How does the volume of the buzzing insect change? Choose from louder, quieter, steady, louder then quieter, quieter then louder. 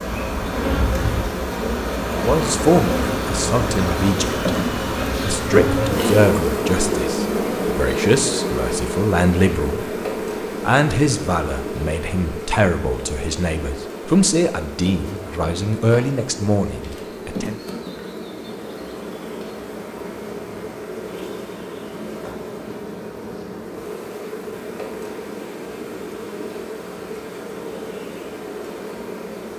quieter.